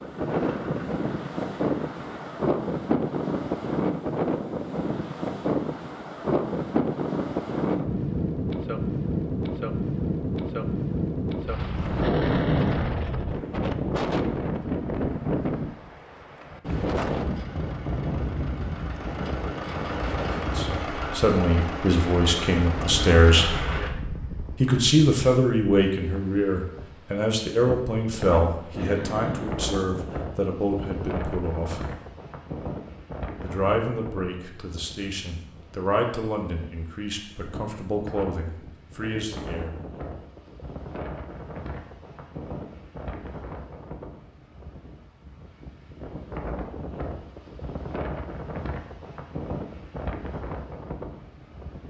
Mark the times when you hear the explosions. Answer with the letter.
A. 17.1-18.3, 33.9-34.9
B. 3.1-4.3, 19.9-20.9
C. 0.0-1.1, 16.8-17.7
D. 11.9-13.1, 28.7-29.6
D.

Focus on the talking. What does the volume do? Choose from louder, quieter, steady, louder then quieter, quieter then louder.
quieter.